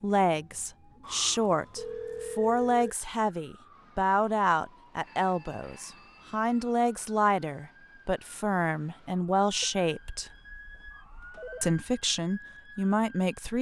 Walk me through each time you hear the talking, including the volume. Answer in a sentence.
The talking can be heard from 0.0 to 10.3 s, at a steady volume; and briefly from 11.6 to 13.5 s.